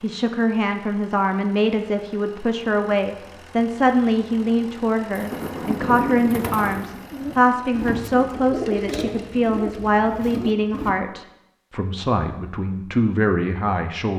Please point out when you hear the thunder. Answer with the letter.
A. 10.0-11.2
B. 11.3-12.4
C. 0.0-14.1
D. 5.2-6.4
D.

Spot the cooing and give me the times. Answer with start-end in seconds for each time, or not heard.
5.1-10.9.